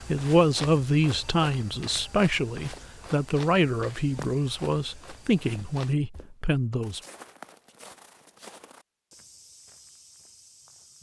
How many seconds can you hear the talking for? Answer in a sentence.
You can hear the talking for 7 seconds altogether.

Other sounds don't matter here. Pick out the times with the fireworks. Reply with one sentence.
The fireworks can't be heard in this clip.